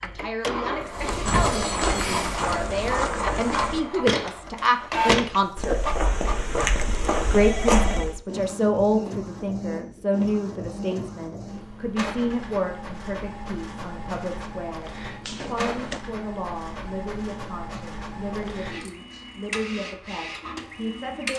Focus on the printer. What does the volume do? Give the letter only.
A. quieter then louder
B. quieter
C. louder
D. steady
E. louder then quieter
B.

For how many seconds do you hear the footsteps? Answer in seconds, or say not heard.
7 s.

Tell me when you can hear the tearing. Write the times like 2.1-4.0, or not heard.
not heard.